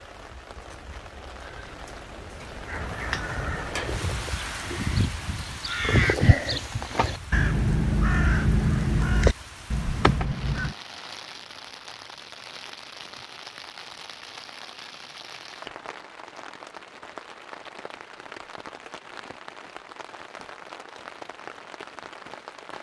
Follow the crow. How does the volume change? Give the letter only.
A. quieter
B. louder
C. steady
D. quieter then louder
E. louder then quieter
B.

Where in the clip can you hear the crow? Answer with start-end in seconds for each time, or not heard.
2.6-10.8.